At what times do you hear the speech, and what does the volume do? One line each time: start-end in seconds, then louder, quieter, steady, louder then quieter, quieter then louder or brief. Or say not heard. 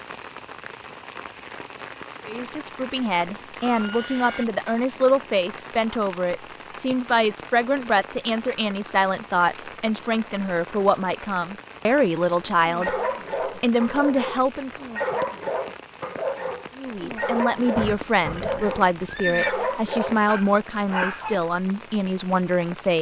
2.2-14.8 steady
16.8-22.9 steady.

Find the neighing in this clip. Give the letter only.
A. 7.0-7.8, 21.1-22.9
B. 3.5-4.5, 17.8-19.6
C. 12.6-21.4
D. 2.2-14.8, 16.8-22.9
B.